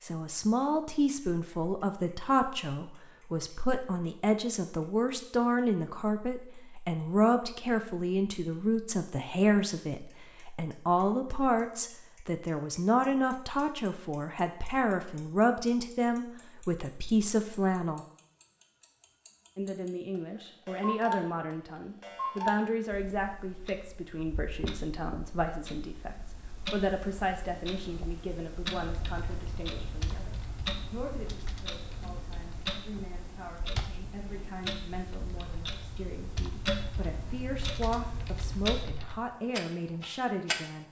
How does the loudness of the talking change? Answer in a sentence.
The volume of the talking goes down.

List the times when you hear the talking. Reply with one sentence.
You can hear the talking from 0.0 to 18.1 s and from 19.6 to 40.8 s.